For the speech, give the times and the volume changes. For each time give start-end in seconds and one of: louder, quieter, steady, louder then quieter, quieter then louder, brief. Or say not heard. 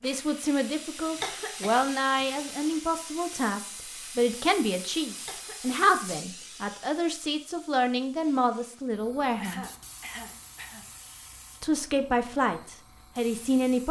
0.0-9.7 steady
11.6-13.8 brief.